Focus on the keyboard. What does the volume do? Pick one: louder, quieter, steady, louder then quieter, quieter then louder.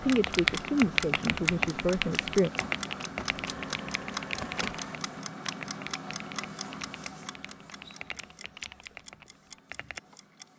quieter.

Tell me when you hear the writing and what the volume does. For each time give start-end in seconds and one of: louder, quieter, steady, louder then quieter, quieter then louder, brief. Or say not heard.
not heard.